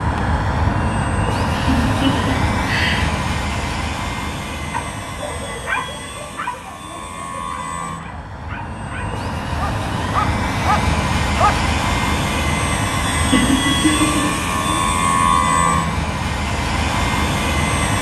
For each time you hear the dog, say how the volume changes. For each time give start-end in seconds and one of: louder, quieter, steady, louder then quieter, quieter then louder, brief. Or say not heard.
4.7-11.6 quieter then louder.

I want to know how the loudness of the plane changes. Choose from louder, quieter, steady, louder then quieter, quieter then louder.
quieter then louder.